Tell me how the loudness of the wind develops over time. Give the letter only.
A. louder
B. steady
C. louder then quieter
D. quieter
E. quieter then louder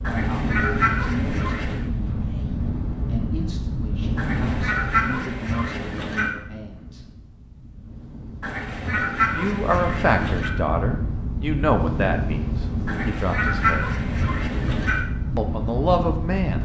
E.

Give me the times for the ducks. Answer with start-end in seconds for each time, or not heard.
0.0-1.9, 4.2-6.3, 8.4-10.5, 12.8-15.0.